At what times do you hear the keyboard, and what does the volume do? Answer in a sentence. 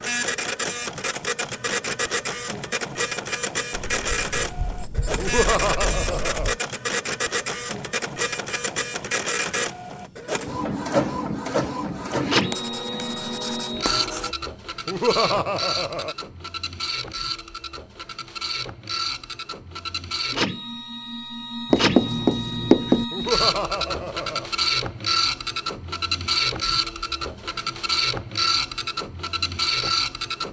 You can't hear the keyboard here.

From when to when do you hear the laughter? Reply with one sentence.
You can hear the laughter from 5.2 to 6.5 s, from 14.8 to 16.1 s and from 23.1 to 24.5 s.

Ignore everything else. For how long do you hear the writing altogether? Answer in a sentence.
The writing can be heard for 6 seconds in total.